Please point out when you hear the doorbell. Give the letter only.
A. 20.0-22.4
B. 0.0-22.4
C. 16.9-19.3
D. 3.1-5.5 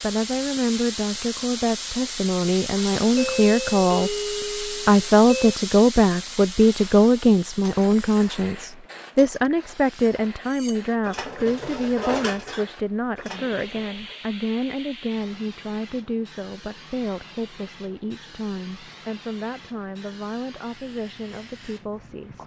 D.